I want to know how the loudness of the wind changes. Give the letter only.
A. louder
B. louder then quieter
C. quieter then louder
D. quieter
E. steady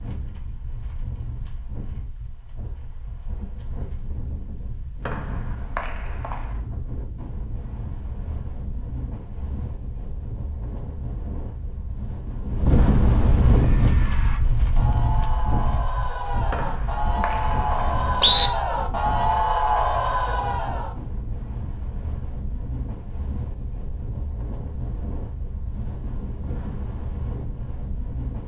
B.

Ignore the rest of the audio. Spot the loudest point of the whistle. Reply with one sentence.
The loudest moment of the whistle is at 18 seconds.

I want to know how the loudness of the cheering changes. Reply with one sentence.
The volume of the cheering goes up.